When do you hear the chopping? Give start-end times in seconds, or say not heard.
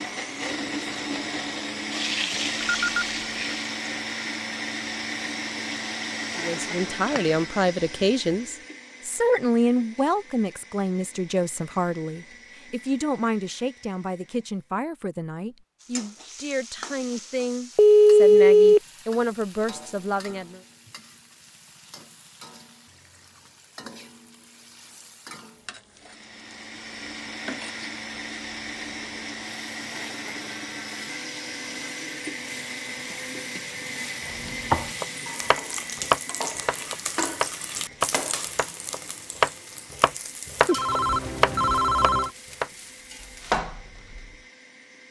34.3-44.3.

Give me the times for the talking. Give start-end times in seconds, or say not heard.
6.3-20.6.